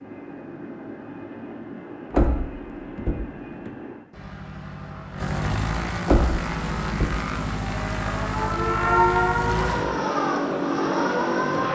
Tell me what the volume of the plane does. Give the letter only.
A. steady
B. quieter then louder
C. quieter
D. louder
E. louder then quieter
D.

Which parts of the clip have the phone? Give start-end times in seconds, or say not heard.
not heard.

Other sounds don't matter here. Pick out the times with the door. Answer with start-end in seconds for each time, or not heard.
2.1-3.7, 6.0-7.2.